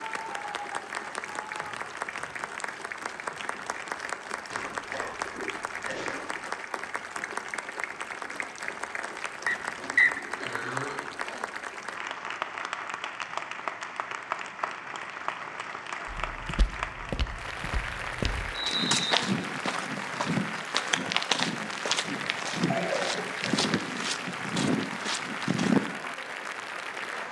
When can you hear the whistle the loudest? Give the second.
10 s.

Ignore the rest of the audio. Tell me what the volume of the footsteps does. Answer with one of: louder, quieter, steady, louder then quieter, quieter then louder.
louder.